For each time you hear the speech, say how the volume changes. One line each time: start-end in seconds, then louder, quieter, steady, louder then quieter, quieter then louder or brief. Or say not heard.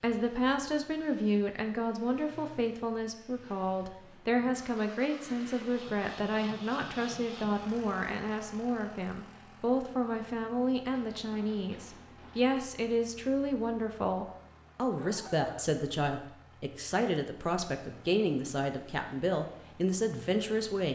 0.0-20.8 steady.